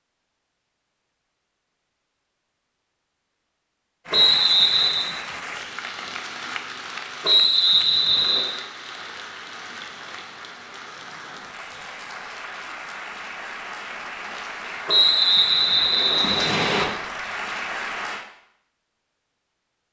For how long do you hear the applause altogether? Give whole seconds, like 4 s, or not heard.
14 s.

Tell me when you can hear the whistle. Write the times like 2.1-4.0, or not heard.
4.1-5.1, 7.2-8.4, 14.8-16.9.